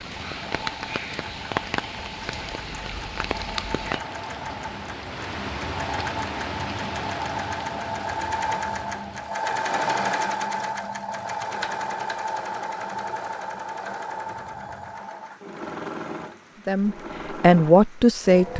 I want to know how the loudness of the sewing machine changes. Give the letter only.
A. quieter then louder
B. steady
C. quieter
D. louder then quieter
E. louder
D.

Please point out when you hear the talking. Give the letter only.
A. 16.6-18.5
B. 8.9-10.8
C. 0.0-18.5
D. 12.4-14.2
A.